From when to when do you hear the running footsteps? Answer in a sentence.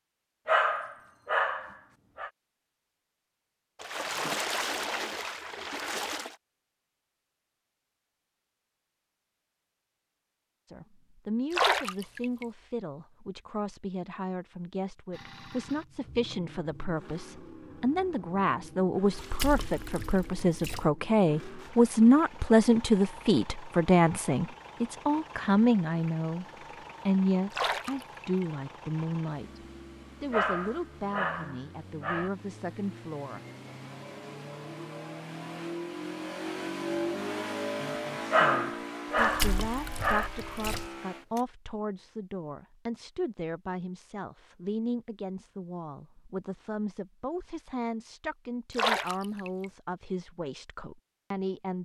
You can't hear the running footsteps here.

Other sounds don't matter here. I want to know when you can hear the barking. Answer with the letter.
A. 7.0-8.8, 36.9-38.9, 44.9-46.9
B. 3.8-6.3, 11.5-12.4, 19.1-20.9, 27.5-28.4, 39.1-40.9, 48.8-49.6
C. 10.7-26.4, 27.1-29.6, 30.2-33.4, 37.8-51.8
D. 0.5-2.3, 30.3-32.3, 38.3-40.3
D.